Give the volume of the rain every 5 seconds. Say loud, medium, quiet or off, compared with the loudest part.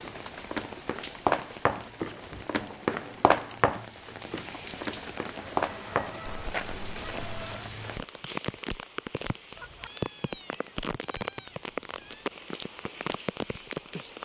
medium, loud, loud.